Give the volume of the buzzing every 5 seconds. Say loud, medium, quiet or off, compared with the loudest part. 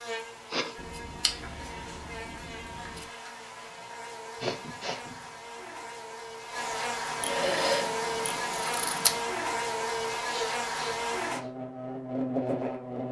medium, loud, loud.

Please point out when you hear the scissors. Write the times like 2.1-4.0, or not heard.
0.8-3.0, 7.2-9.2.